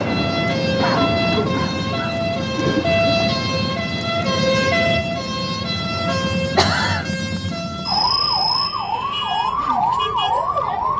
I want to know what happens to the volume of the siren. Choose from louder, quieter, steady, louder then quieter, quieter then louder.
steady.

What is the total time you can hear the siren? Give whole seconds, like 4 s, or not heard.
11 s.